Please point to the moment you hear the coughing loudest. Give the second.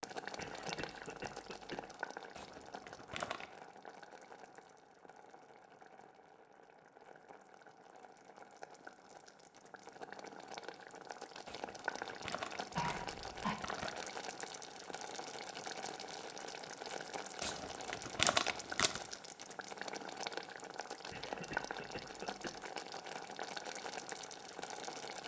13 s.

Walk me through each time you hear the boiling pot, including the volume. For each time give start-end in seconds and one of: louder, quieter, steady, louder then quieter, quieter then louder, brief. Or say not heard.
0.0-25.2 quieter then louder.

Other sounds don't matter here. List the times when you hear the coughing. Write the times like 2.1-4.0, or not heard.
0.3-1.9, 12.8-13.6, 21.1-22.6.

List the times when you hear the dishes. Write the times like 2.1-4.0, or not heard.
not heard.